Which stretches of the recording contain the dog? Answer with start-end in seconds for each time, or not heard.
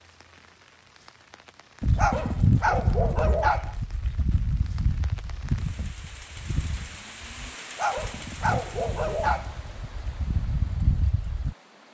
1.9-3.8, 7.8-9.6.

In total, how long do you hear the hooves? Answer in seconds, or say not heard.
10 s.